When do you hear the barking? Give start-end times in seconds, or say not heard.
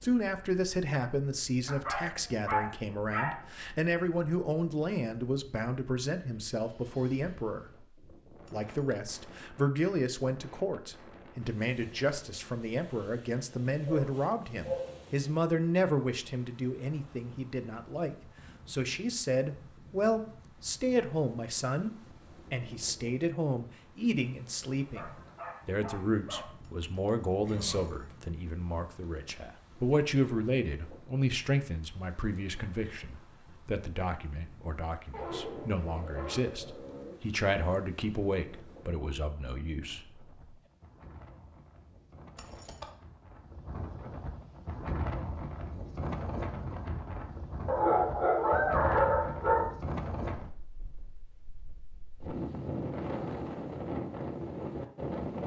1.6-3.4, 13.8-15.0, 24.9-26.5, 35.1-37.1, 47.6-49.6.